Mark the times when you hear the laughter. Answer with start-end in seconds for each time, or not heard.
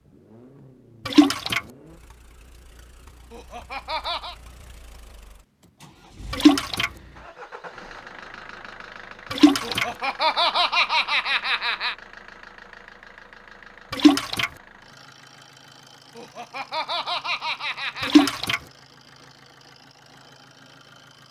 3.3-4.3, 9.6-11.9, 16.1-18.4.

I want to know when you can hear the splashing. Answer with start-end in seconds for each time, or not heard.
1.1-1.6, 6.3-6.9, 9.3-9.8, 13.9-14.5, 18.0-18.6.